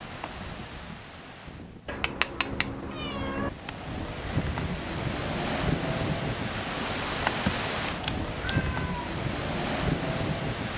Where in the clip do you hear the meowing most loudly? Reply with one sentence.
The loudest moment of the meowing is at 8 seconds.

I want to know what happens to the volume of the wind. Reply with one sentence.
The loudness of the wind goes up.